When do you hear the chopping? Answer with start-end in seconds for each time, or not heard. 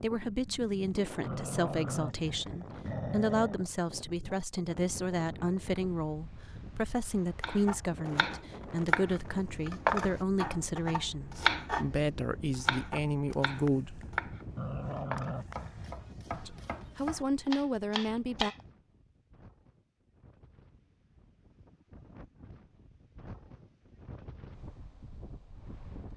7.4-18.6.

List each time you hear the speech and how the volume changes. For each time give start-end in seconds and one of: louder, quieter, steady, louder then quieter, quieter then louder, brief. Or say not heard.
0.0-14.2 steady
16.3-18.5 brief.